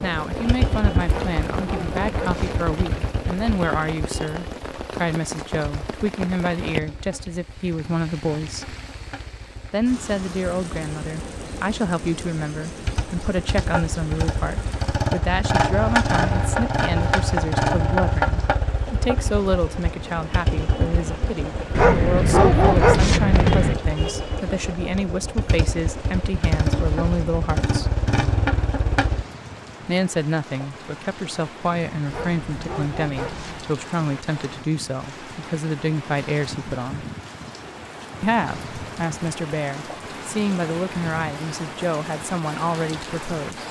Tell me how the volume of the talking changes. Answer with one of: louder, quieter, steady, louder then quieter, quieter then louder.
steady.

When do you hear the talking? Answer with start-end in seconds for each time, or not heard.
0.0-8.8, 9.7-27.9, 29.9-37.0, 38.2-43.6.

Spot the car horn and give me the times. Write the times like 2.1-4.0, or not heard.
not heard.